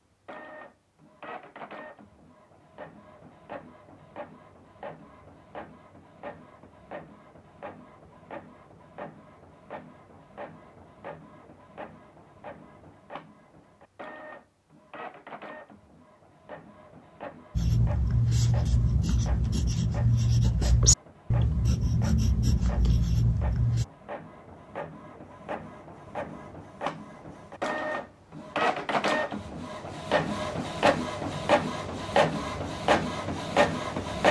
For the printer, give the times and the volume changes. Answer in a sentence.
The printer can be heard from 0.2 to 34.2 s, getting louder.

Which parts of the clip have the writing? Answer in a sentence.
The writing can be heard from 17.6 to 23.9 s.